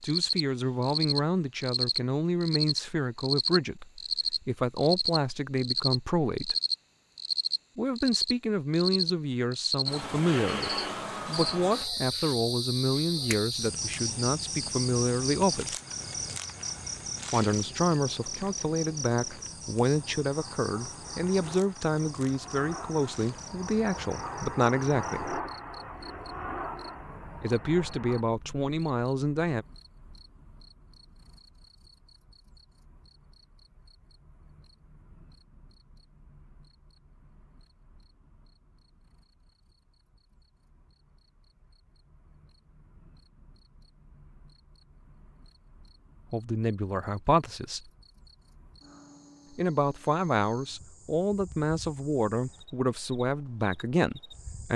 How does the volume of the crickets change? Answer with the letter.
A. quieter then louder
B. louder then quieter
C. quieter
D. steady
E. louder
A.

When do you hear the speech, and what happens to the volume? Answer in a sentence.
You can hear the speech from 0.0 to 6.5 s, at a steady volume; from 7.8 to 15.8 s, at a steady volume; from 17.3 to 25.4 s, at a steady volume; briefly from 27.4 to 29.6 s; briefly from 46.3 to 47.9 s; and from 49.5 to 54.7 s, at a steady volume.